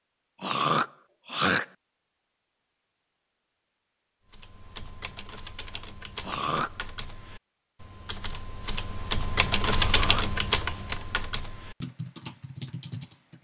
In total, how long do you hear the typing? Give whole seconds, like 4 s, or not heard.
9 s.